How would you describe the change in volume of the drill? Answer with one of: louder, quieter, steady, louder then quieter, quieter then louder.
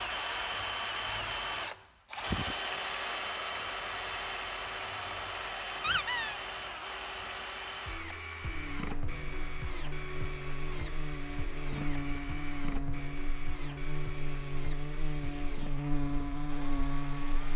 quieter.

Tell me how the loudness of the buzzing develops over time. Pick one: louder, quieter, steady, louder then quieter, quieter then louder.
louder.